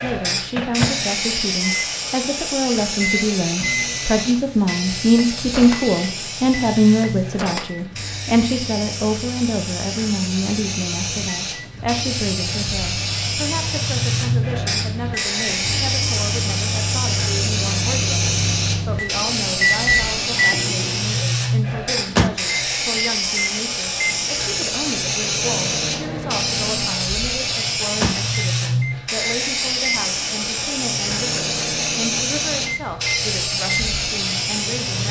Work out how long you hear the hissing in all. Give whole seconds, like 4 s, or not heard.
35 s.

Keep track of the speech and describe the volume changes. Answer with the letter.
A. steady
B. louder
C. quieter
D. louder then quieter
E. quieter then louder
C.